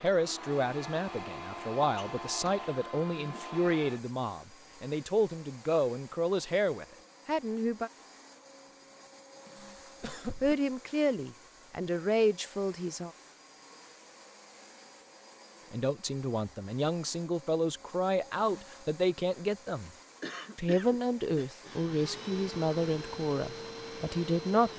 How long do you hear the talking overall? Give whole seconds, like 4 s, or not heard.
19 s.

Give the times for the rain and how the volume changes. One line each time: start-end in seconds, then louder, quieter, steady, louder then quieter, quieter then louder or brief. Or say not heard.
not heard.